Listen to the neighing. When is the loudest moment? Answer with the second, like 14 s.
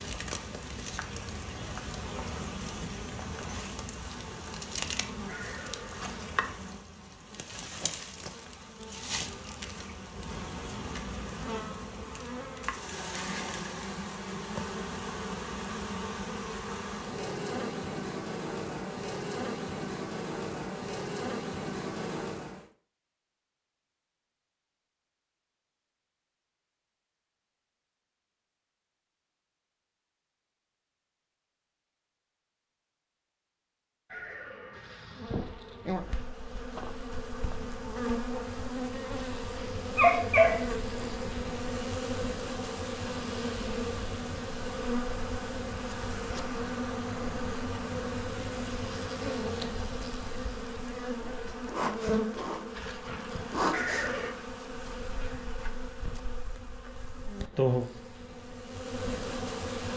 54 s.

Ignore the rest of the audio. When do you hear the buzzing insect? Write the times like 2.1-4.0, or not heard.
0.0-22.6, 35.1-59.9.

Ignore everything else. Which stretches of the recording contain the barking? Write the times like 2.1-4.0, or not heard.
39.8-41.5.